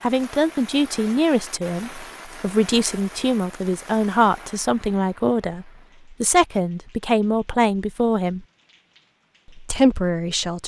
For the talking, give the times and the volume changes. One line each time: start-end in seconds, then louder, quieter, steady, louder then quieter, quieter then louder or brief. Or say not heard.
0.0-8.4 steady
9.6-10.6 brief.